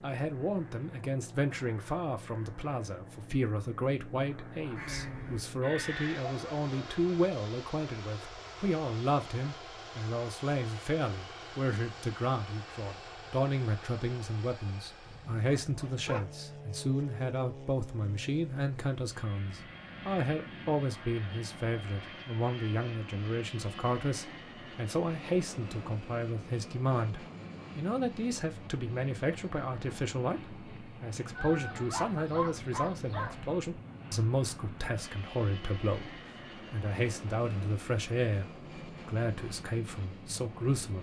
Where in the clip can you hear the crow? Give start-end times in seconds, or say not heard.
4.7-7.0.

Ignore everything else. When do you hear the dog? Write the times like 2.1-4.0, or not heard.
15.1-16.3, 31.4-33.5.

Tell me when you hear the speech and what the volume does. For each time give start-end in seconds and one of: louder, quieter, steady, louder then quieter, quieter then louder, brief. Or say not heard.
0.0-40.9 steady.